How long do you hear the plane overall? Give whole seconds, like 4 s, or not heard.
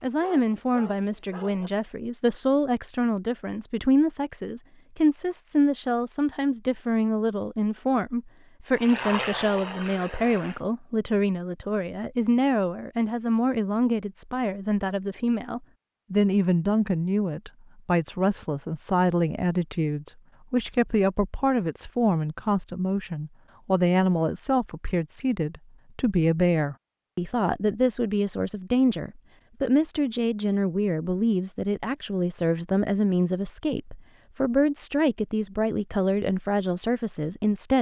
2 s.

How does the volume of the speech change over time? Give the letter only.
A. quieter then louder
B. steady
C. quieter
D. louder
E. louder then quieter
B.